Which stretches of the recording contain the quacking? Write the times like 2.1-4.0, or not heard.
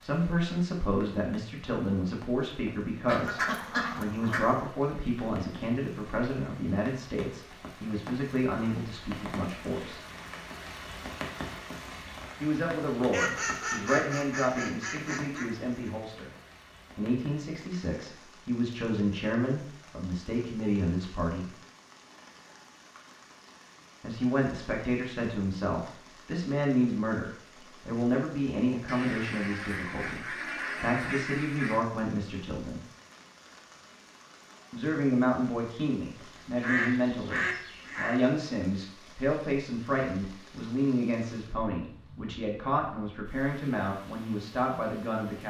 3.0-4.7, 13.1-15.9, 28.9-31.9, 36.2-38.2.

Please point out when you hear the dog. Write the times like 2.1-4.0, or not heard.
not heard.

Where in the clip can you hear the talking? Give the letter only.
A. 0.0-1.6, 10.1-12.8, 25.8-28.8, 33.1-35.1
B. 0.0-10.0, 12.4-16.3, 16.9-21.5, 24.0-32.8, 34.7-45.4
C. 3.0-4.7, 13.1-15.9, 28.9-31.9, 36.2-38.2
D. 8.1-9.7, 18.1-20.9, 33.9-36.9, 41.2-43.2
B.